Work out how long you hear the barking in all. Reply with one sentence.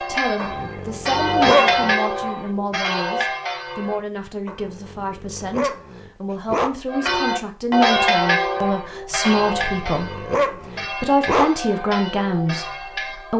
The barking can be heard for 6 seconds in total.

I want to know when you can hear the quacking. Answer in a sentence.
You can't hear the quacking here.